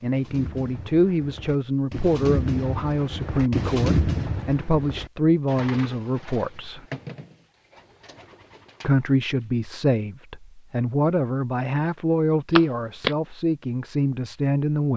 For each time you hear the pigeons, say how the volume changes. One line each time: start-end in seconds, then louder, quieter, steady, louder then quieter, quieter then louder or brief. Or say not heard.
0.0-9.4 louder then quieter.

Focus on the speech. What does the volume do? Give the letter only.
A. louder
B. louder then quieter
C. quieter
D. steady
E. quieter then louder
D.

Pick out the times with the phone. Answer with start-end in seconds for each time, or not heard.
12.6-13.2.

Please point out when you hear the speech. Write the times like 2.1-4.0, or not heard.
0.0-6.8, 8.8-14.9.